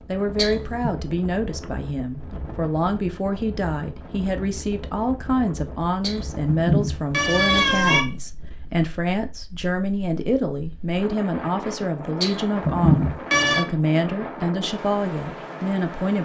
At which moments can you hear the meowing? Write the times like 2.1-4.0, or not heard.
0.3-0.9, 6.0-8.0, 12.2-13.7.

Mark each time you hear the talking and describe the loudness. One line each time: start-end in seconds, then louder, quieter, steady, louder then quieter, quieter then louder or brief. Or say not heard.
0.1-16.1 steady.